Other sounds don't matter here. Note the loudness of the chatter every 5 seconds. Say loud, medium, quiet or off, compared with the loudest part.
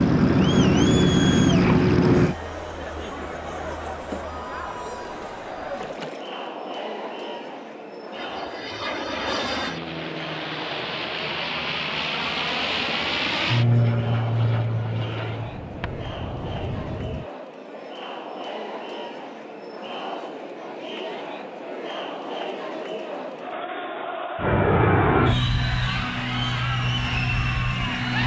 loud, medium, medium, medium, loud, loud.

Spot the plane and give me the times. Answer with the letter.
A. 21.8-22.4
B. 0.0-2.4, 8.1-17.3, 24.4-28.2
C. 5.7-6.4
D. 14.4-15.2
B.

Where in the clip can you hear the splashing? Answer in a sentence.
The splashing can be heard from 5.7 to 6.4 s.